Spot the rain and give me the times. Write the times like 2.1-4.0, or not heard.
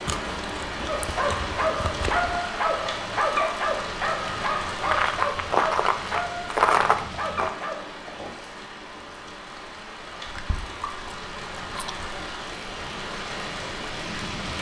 0.0-14.5.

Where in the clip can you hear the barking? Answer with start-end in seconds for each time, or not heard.
0.8-8.3.